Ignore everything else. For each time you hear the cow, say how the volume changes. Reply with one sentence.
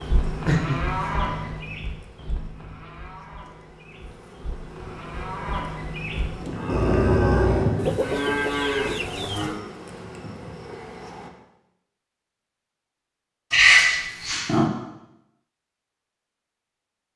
You can hear the cow from 0.0 to 9.6 s, getting quieter then louder.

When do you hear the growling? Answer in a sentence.
The growling can be heard from 0.4 to 1.6 s, from 6.7 to 7.8 s and from 13.5 to 14.7 s.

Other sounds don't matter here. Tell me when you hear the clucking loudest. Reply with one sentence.
The loudest moment of the clucking is at 8 seconds.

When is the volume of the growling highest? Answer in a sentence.
The volume of the growling peaks at 14 seconds.